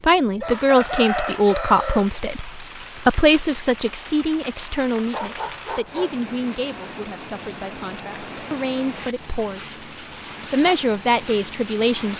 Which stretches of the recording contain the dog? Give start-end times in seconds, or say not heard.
5.1-6.2.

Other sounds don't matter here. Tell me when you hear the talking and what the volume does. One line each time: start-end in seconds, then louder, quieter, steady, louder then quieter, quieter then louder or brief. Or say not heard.
0.0-9.8 quieter
10.5-12.1 brief.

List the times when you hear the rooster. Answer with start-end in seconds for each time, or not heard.
0.4-2.1.